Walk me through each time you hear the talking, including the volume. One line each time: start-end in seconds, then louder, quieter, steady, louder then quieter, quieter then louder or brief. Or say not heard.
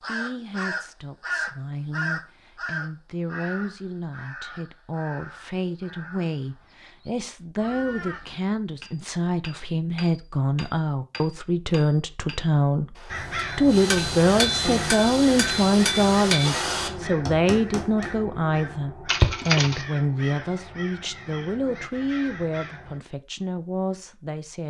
0.1-12.9 louder
13.6-24.6 quieter.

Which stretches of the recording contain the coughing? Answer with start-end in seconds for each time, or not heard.
19.1-19.9.